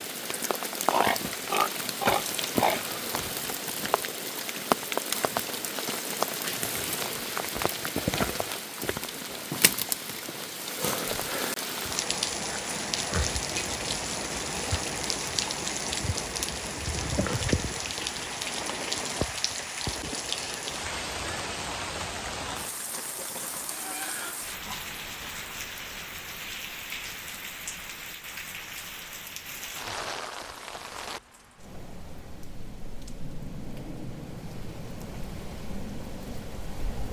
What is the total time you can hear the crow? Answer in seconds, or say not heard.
not heard.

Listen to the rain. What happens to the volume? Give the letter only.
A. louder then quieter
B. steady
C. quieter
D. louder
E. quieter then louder
C.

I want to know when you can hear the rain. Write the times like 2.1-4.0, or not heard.
0.0-37.0.